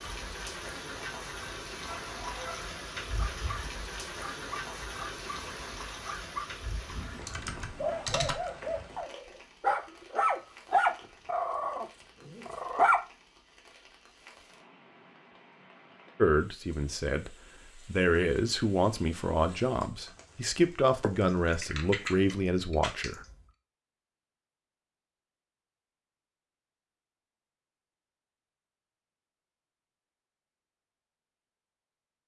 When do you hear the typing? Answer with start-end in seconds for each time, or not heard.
6.8-8.5, 21.0-23.4.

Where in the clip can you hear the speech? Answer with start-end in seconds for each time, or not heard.
16.1-23.2.